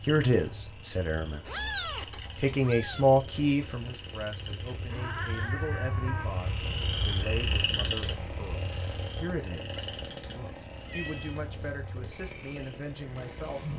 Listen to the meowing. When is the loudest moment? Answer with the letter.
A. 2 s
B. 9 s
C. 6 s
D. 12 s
A.